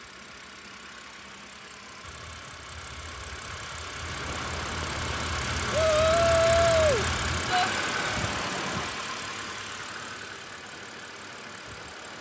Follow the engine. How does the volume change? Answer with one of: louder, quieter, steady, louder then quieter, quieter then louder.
louder then quieter.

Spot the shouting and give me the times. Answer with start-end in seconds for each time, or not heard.
5.7-7.7.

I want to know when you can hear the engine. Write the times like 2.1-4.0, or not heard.
0.0-12.1.